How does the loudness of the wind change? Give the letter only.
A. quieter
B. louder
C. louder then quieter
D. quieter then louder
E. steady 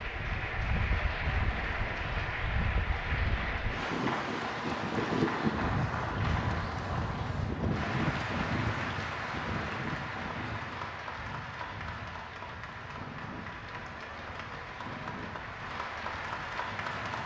C.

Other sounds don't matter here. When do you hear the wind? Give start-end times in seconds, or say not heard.
0.0-17.2.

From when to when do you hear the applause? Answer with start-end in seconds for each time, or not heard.
0.0-17.2.